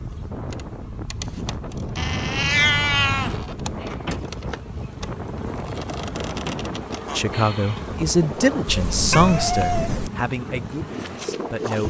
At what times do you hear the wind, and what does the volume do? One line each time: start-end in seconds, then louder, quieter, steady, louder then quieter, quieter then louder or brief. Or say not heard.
0.0-11.8 steady.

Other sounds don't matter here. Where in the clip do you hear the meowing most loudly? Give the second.
3 s.